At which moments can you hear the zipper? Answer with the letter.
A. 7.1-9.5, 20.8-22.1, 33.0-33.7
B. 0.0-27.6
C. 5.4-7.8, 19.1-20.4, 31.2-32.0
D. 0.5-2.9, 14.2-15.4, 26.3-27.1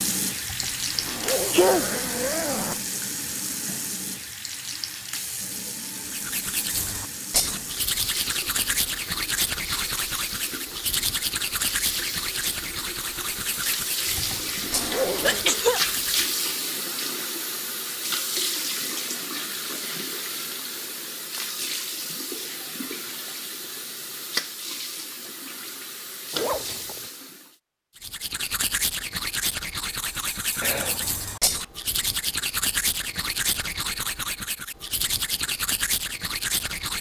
D.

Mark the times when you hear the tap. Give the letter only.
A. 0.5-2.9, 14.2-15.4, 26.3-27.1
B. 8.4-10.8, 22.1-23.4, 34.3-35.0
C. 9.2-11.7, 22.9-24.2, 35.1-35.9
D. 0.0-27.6
D.